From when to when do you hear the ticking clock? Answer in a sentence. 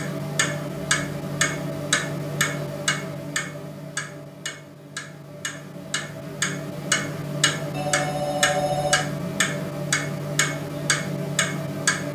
The ticking clock can be heard from 0.0 to 12.1 s.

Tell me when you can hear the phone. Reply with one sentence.
You can hear the phone from 7.7 to 9.1 s.